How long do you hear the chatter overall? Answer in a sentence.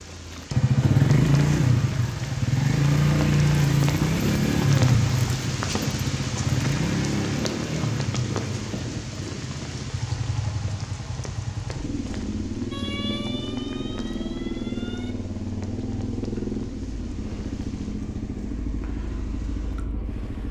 You can't hear the chatter here.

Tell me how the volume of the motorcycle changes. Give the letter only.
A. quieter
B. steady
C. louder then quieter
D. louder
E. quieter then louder
A.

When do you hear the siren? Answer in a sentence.
You can hear the siren from 12.7 to 15.2 s.